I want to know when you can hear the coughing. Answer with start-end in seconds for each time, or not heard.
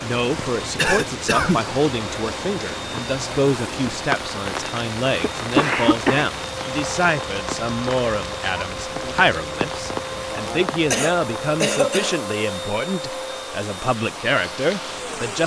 0.8-1.6, 5.2-6.3, 10.9-12.2.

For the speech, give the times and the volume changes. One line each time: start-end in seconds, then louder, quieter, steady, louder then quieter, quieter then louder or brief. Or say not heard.
0.0-15.4 steady.